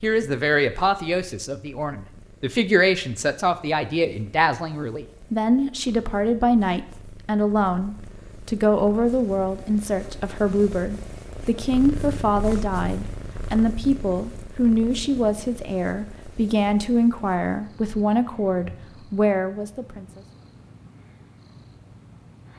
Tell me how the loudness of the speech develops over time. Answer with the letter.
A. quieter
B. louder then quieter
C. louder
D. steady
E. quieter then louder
D.